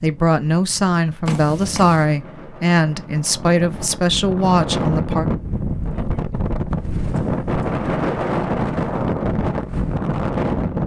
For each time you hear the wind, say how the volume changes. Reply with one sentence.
You can hear the wind from 0.0 to 10.8 s, getting louder.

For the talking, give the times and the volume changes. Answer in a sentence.
You can hear the talking from 0.0 to 5.2 s, at a steady volume.